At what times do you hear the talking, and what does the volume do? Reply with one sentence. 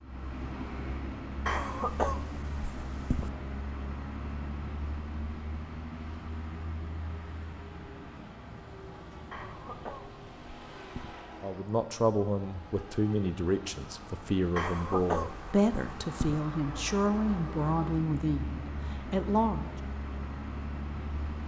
The talking can be heard from 11.4 to 19.7 s, at a steady volume.